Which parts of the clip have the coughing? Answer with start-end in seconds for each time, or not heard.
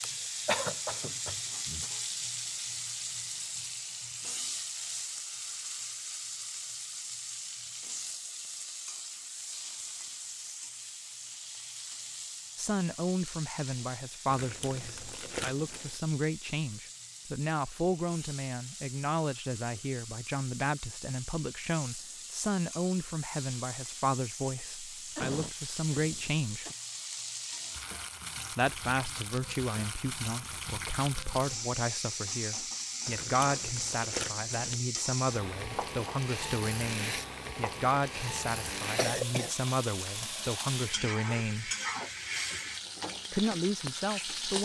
0.0-1.9, 25.1-26.8, 39.0-39.5.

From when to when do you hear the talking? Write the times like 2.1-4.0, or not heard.
12.6-26.6, 28.5-41.7, 43.3-44.6.